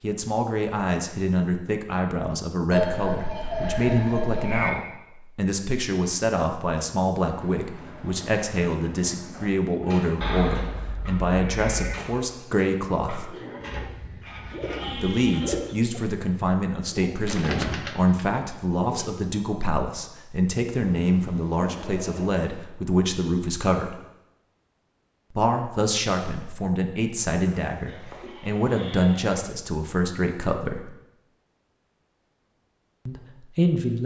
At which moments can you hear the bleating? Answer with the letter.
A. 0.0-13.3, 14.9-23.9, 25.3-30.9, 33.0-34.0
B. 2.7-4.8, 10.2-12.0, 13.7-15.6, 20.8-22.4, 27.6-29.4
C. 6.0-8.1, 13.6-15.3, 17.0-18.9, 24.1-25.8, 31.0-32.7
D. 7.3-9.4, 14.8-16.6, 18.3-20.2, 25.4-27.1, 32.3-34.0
B.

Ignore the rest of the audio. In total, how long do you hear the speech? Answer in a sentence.
You can hear the speech for 29 seconds altogether.